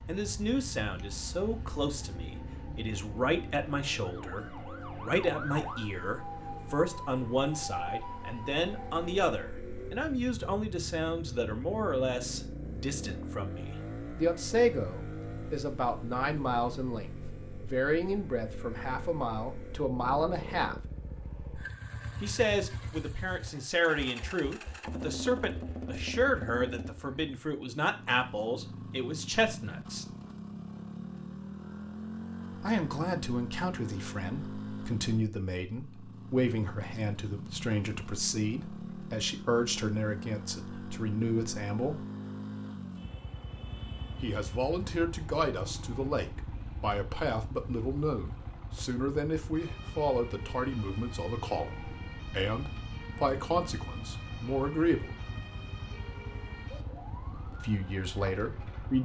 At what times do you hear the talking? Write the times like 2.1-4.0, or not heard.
0.1-20.8, 22.2-30.1, 32.6-42.0, 44.2-55.1, 57.6-59.0.